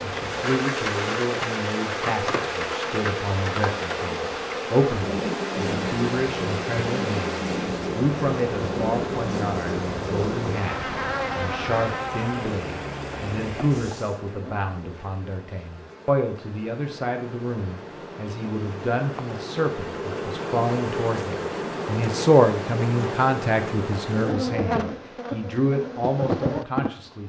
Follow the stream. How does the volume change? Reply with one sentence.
The volume of the stream stays about the same.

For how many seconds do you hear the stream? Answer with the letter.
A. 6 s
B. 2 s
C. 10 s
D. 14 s
D.